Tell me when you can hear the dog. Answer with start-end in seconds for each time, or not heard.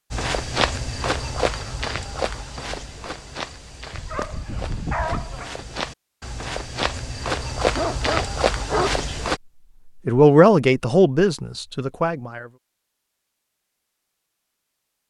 3.9-5.5, 7.8-9.0.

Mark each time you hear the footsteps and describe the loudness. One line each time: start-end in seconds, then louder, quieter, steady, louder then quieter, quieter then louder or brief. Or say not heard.
0.1-9.4 quieter then louder.